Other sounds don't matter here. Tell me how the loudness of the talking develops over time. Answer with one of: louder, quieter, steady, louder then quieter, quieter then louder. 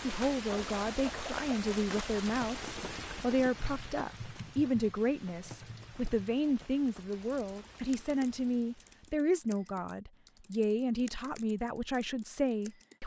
steady.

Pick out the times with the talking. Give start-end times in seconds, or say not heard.
0.0-13.0.